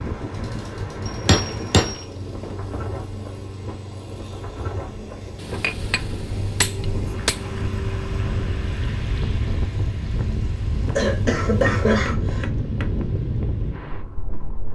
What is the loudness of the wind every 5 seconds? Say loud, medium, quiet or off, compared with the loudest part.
medium, loud, loud.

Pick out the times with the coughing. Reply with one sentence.
You can hear the coughing from 10.9 to 12.4 s.